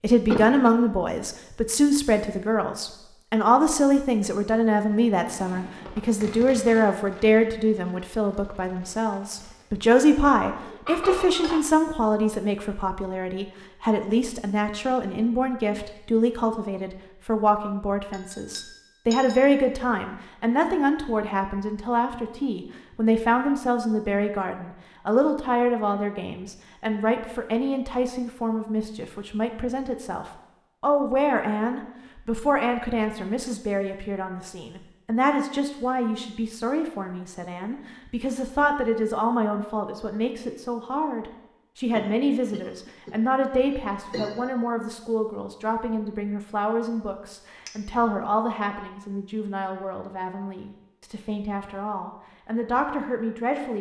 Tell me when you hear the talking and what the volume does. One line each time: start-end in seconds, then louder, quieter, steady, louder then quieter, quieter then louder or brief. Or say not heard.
0.0-53.7 quieter.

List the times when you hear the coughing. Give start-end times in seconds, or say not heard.
0.2-0.7, 42.0-44.5.